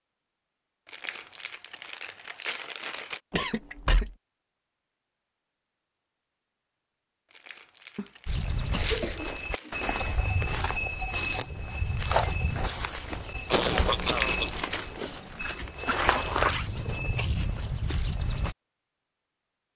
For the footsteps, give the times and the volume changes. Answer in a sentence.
The footsteps can be heard from 8.2 to 18.6 s, at a steady volume.